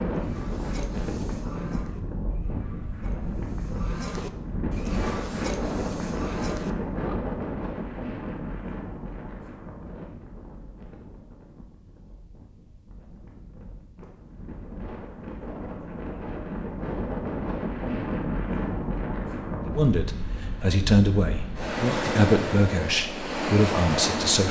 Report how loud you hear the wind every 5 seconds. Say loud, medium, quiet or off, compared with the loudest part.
loud, loud, quiet, loud, loud.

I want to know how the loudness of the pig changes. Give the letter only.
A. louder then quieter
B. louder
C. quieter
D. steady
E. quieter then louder
E.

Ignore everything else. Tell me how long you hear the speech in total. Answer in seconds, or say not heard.
5 s.